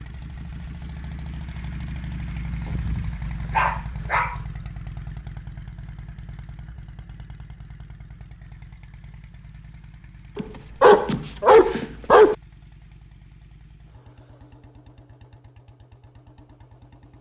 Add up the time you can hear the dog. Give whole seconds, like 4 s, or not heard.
4 s.